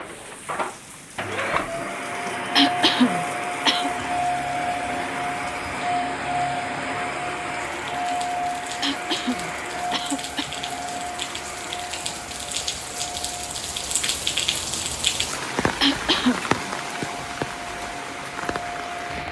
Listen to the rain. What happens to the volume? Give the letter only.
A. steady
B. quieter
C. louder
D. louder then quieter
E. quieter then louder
C.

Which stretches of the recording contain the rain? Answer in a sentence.
You can hear the rain from 0.0 to 19.2 s.